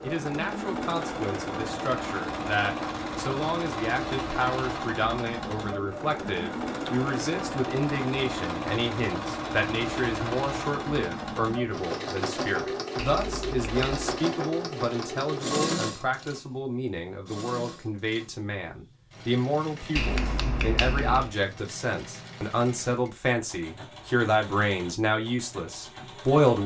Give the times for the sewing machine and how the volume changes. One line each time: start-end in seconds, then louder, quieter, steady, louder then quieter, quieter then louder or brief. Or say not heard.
0.0-26.6 quieter.